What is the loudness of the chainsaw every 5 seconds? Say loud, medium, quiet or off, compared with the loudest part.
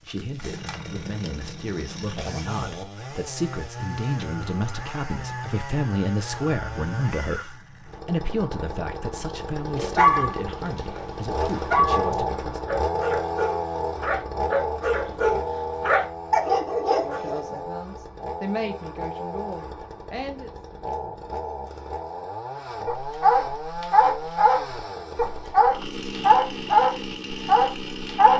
medium, medium, loud, medium, medium, medium.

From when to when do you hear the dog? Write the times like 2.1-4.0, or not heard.
9.8-17.6, 22.9-28.3.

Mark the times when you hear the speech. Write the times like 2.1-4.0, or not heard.
0.1-12.7, 17.0-20.5.